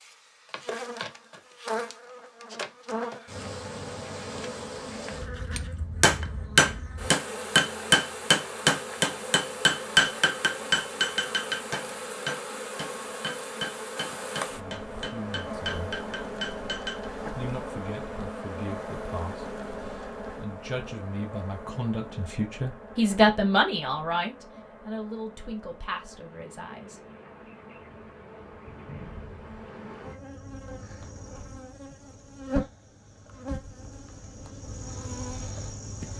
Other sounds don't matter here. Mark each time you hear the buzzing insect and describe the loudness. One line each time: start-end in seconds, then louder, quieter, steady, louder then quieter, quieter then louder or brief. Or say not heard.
0.0-36.1 quieter then louder.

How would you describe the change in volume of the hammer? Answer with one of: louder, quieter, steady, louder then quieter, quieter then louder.
quieter.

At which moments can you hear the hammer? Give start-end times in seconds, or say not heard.
5.5-17.1.